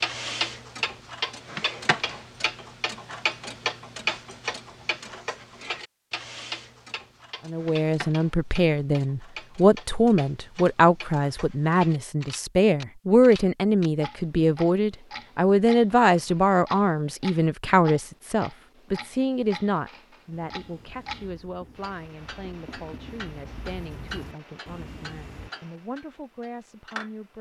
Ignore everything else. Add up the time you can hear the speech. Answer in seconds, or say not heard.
20 s.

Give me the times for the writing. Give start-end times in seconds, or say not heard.
20.3-25.5.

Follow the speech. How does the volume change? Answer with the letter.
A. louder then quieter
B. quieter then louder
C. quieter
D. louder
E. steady
C.